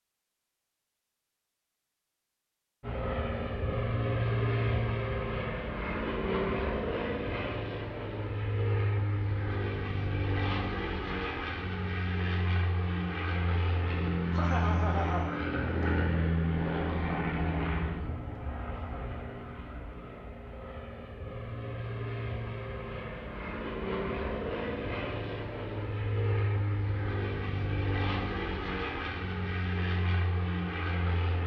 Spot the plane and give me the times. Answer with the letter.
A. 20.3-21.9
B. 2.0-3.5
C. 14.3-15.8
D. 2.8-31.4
D.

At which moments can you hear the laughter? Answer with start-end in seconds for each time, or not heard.
14.3-15.8.